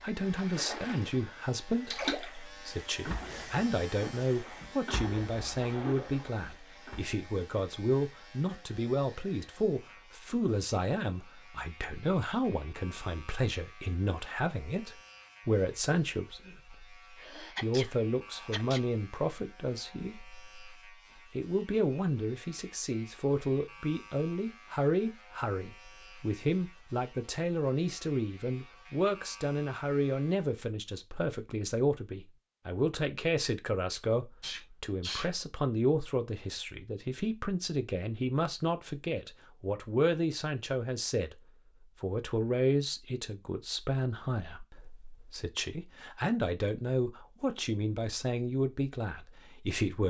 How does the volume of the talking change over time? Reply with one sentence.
The loudness of the talking stays about the same.